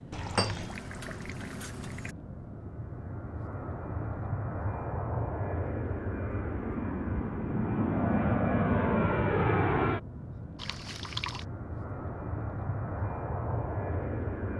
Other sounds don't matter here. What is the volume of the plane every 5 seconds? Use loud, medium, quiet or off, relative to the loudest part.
medium, loud, medium.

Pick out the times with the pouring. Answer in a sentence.
The pouring can be heard from 0.1 to 2.1 s and from 10.6 to 11.4 s.